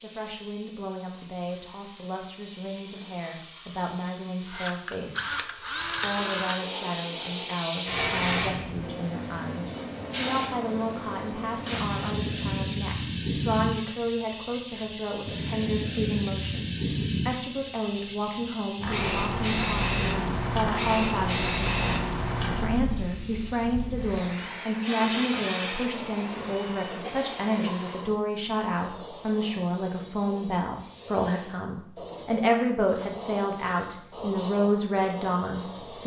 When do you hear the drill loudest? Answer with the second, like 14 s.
6 s.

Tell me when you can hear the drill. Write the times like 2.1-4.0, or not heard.
4.5-6.6, 23.9-28.1.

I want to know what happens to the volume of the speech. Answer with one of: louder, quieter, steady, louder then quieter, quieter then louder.
louder.